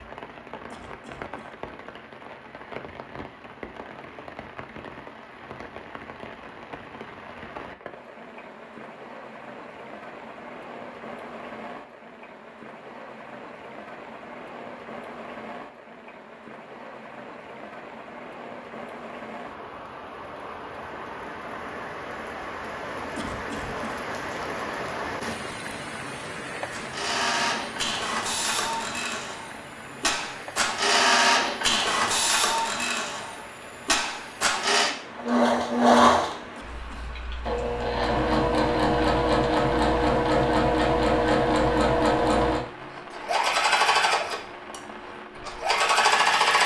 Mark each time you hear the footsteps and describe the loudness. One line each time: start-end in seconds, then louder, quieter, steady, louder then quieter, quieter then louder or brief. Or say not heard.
not heard.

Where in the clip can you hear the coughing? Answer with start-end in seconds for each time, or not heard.
0.7-1.6, 23.1-24.0, 36.5-37.2.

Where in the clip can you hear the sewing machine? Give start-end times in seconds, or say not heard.
26.7-46.6.